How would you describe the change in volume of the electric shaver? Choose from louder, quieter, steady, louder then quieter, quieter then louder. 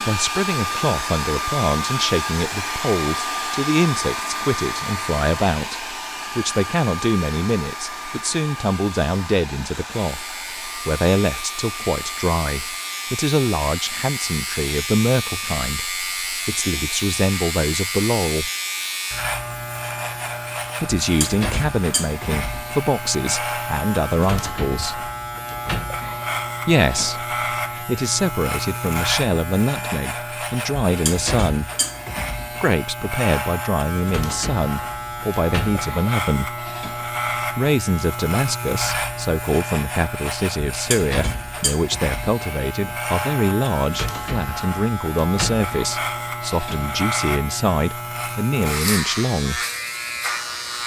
steady.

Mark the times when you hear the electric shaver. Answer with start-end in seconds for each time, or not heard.
9.8-50.8.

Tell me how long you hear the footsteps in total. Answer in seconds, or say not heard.
not heard.